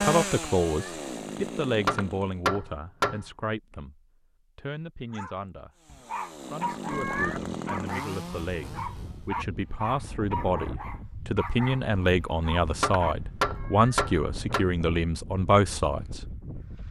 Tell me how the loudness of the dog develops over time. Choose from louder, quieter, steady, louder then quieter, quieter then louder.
steady.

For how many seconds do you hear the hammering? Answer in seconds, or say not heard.
3 s.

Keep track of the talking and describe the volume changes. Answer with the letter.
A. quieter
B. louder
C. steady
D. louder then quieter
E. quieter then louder
E.